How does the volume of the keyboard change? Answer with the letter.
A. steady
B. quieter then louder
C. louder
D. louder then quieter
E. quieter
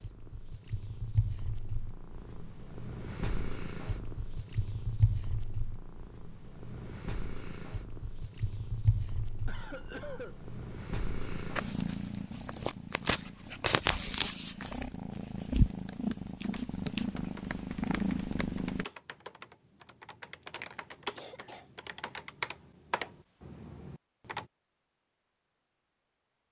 C.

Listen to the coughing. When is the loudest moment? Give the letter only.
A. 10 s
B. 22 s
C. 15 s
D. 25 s
A.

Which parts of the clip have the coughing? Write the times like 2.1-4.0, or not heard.
9.4-10.4, 20.6-21.6.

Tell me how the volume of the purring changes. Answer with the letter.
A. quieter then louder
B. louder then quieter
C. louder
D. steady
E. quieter
C.